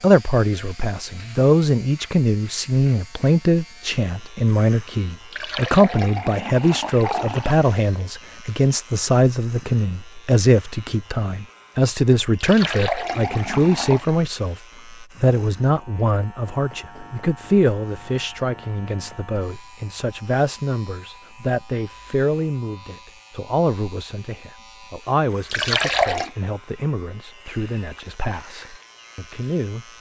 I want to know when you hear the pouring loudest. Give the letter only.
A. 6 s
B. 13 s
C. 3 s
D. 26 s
D.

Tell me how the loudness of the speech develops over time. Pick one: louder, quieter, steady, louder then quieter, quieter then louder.
quieter.